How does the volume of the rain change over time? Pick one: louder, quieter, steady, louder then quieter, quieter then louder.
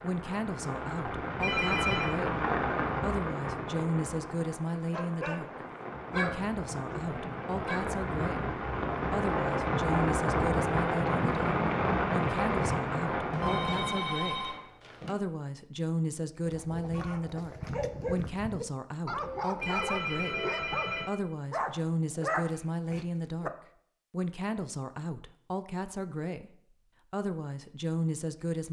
quieter then louder.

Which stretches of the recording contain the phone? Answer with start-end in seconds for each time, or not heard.
1.4-2.1, 13.3-15.2, 19.6-21.1.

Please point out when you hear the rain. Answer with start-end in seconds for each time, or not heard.
0.0-14.7.